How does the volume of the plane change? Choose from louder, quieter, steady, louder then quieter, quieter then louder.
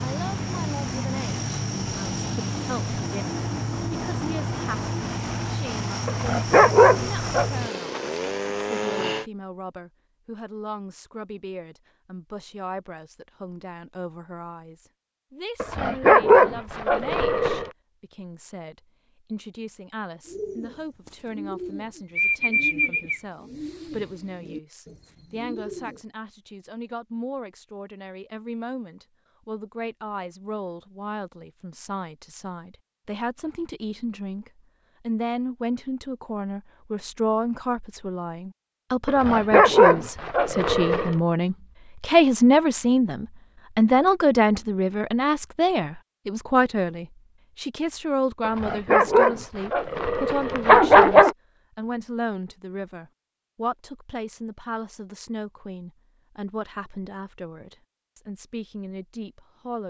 steady.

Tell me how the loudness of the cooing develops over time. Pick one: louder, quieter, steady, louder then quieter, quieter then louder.
louder then quieter.